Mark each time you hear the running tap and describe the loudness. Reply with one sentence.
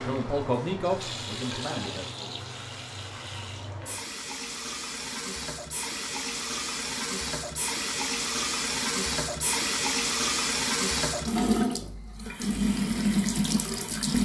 You can hear the running tap from 0.0 to 14.1 s, getting louder.